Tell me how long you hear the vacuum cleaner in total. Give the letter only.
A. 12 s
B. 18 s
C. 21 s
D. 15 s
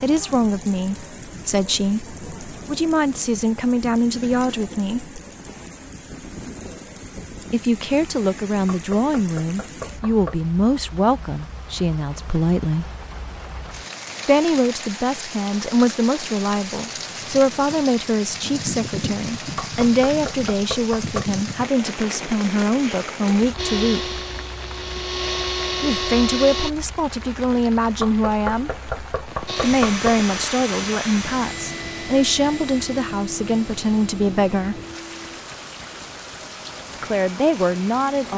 A.